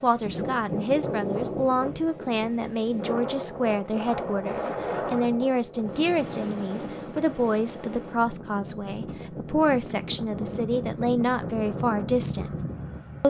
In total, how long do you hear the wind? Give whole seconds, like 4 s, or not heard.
13 s.